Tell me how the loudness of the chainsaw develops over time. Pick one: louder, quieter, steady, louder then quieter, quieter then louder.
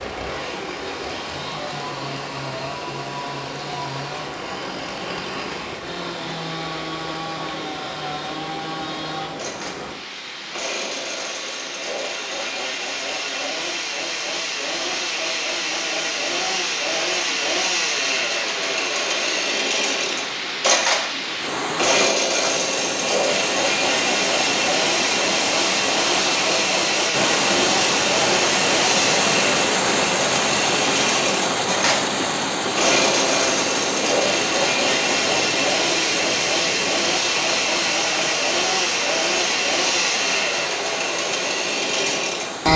louder.